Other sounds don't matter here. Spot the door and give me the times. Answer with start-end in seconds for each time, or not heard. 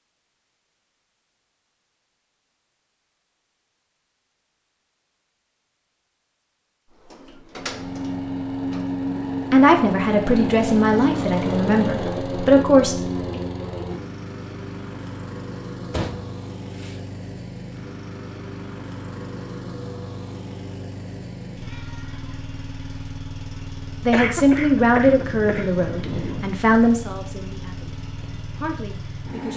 6.9-8.9, 15.9-17.0.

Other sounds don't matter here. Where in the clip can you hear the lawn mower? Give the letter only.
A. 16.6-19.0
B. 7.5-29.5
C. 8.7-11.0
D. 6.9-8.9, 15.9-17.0
B.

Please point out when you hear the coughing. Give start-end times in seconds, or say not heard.
24.1-26.4.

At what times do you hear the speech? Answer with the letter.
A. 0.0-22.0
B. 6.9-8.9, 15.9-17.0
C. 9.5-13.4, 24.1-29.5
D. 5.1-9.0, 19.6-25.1
C.